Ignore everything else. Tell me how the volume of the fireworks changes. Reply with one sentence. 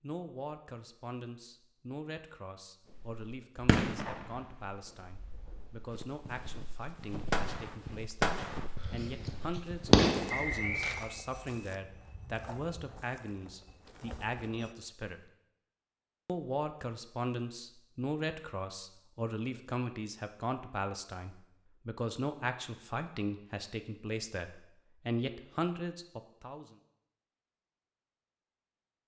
The loudness of the fireworks goes down, then up.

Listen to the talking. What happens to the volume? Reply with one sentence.
The volume of the talking goes up.